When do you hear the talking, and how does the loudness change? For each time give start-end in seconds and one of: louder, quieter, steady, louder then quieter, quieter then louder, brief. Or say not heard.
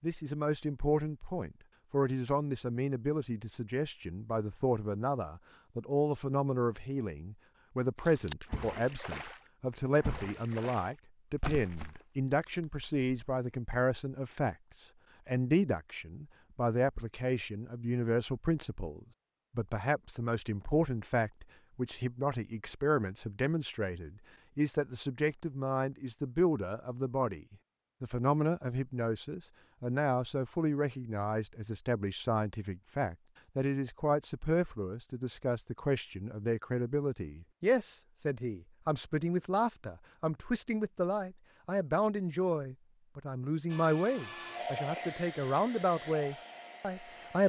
0.0-47.4 steady.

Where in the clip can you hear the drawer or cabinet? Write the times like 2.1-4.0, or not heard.
not heard.